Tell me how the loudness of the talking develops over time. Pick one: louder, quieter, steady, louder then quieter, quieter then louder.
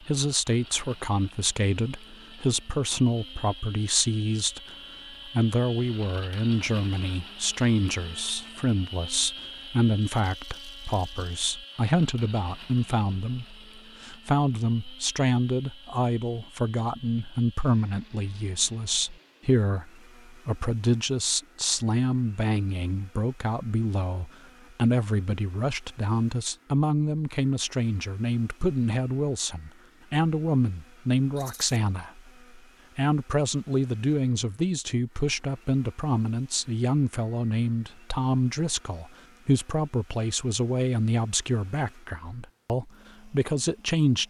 steady.